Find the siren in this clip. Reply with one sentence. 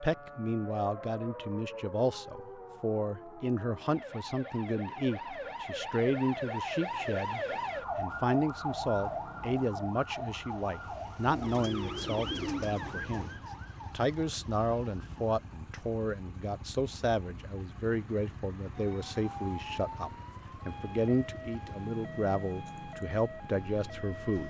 You can hear the siren from 0.0 to 24.4 s.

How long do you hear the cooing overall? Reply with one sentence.
The cooing can be heard for 2 seconds in total.